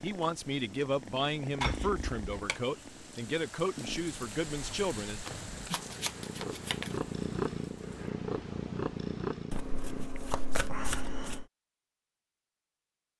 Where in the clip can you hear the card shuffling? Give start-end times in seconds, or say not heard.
1.6-2.5, 5.2-7.0, 9.5-11.4.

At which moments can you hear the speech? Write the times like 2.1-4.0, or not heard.
0.0-5.2.